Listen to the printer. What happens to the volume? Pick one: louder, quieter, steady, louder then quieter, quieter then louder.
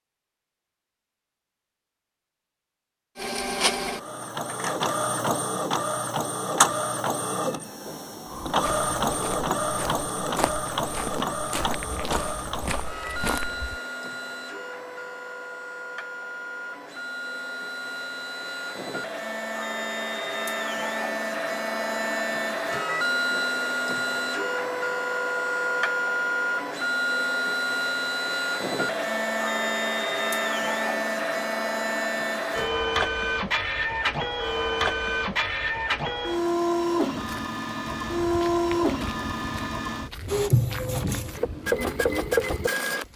quieter then louder.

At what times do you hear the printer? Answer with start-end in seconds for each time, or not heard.
3.1-43.1.